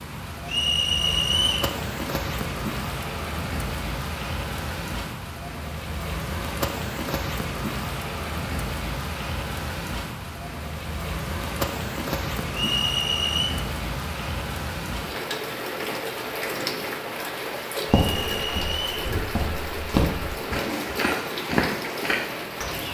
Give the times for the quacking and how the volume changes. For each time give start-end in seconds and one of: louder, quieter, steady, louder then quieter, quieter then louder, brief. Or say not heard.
not heard.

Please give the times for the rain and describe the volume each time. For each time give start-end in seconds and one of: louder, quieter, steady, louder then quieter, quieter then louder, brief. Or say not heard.
0.0-22.8 steady.